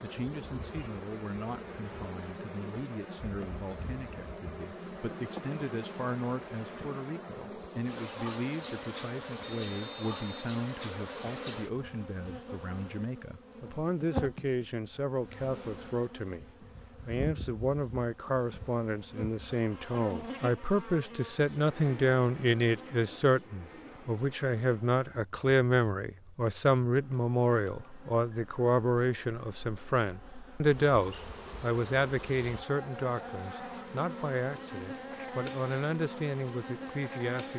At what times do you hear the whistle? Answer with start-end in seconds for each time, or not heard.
9.4-10.4.